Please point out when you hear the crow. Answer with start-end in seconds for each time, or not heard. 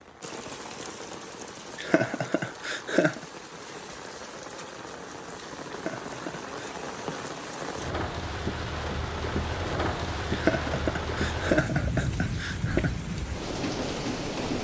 not heard.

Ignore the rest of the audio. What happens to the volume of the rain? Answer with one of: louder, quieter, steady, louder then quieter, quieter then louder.
louder.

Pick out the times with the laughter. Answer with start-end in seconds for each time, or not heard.
1.8-3.2, 5.7-6.8, 10.3-12.9.